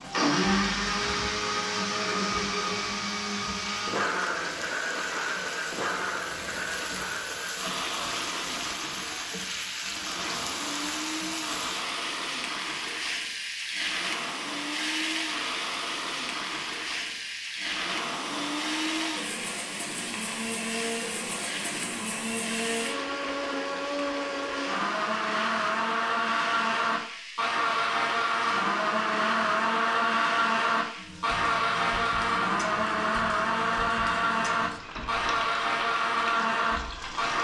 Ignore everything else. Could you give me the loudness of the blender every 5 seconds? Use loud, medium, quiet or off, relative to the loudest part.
loud, medium, medium, medium, medium, loud, loud, loud.